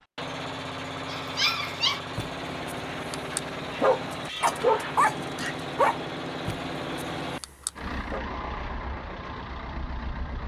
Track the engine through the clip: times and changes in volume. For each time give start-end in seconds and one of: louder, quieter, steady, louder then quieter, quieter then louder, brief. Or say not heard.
0.0-10.4 steady.